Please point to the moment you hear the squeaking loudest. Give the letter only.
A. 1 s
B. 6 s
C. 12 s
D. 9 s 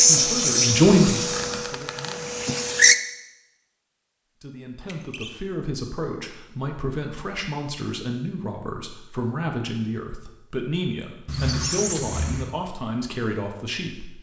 C.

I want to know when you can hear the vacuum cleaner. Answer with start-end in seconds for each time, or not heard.
0.0-3.0.